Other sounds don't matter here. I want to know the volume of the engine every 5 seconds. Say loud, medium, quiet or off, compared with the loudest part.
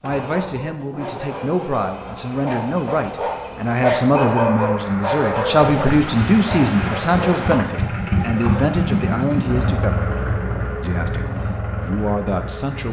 medium, loud, loud.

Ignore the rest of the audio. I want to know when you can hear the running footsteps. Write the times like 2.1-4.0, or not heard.
not heard.